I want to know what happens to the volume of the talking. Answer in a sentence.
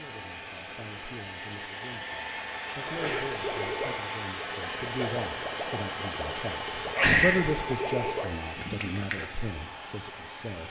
The volume of the talking goes up, then down.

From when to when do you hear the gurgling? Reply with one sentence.
You can hear the gurgling from 3.0 to 9.2 s.